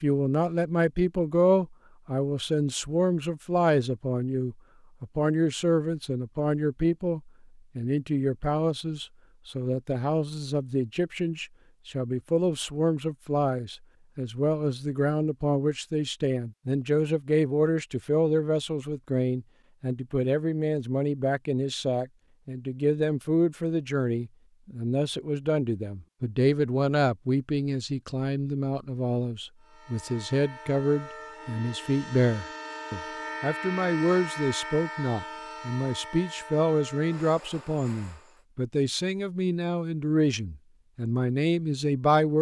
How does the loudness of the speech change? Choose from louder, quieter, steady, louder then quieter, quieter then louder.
steady.